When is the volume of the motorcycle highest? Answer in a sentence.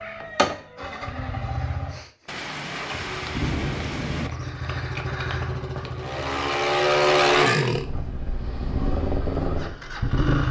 The loudest moment of the motorcycle is at 7 seconds.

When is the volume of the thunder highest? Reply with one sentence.
The volume of the thunder peaks at 4 seconds.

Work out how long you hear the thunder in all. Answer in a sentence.
You can hear the thunder for 2 seconds altogether.